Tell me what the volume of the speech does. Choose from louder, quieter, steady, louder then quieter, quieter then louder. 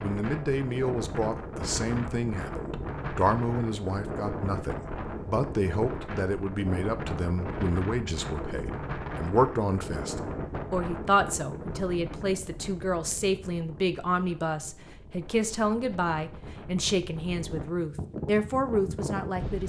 steady.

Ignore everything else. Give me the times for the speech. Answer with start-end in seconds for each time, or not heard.
0.0-19.6.